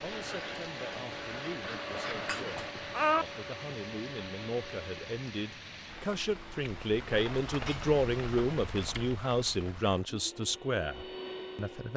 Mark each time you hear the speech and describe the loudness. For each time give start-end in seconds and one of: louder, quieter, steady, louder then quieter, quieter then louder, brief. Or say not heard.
0.0-11.9 louder.